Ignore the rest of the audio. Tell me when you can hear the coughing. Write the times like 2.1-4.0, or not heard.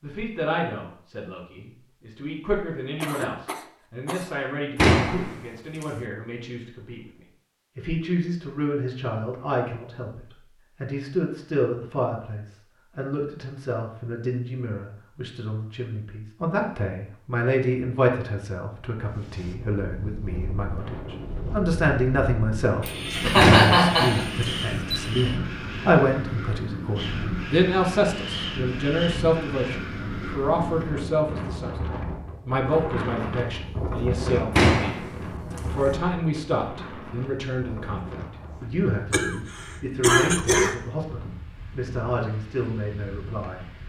3.0-4.3, 22.8-25.3, 39.1-40.8.